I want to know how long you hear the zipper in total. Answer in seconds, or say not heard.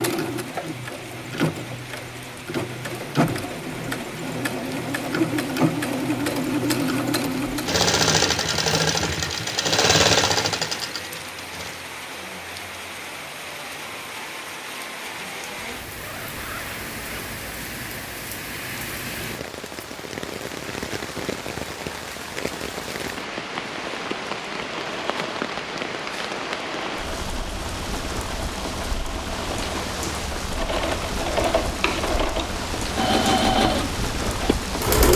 2 s.